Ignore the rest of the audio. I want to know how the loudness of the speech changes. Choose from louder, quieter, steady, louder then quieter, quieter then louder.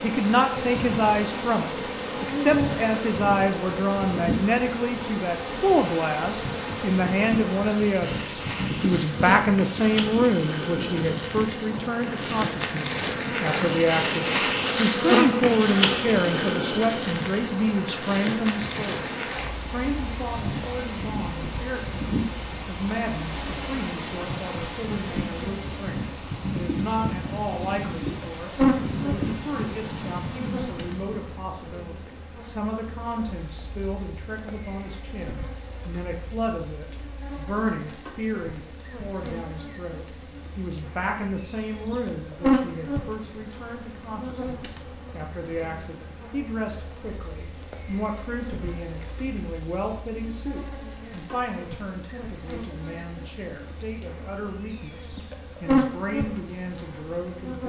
quieter.